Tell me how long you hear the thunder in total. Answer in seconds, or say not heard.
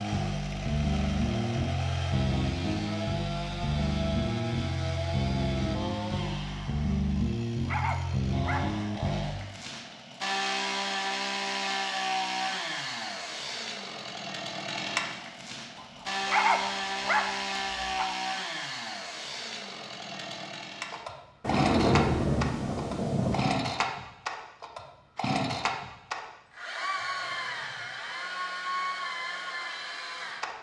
2 s.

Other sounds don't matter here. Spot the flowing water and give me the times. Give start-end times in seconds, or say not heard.
not heard.